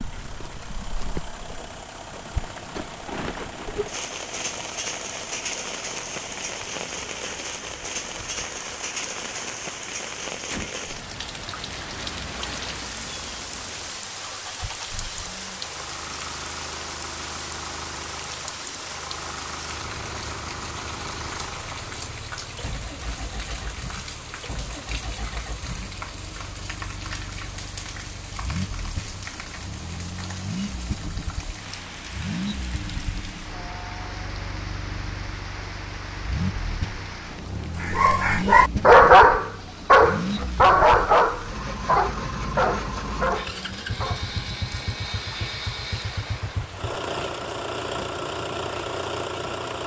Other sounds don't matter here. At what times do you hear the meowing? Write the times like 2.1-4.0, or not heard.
not heard.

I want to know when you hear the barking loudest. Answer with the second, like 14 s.
39 s.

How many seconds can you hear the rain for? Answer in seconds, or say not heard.
50 s.